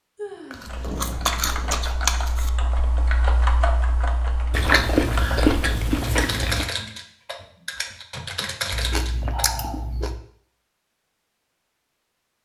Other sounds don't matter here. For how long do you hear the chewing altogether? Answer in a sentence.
The chewing can be heard for 6 seconds in total.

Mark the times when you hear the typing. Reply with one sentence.
You can hear the typing from 0.6 to 9.6 s.